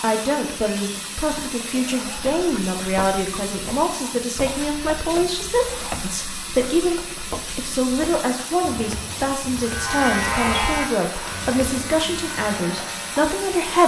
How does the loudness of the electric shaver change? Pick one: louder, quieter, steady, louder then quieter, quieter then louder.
quieter.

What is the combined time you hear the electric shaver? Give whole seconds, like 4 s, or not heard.
4 s.